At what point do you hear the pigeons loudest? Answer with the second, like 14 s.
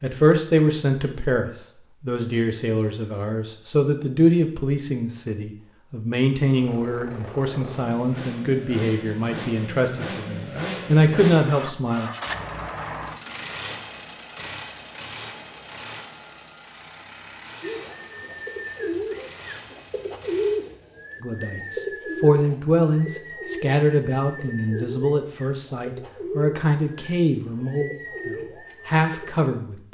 20 s.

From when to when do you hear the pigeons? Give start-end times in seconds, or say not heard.
17.6-29.3.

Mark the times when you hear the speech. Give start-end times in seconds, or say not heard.
0.0-12.1, 21.2-29.8.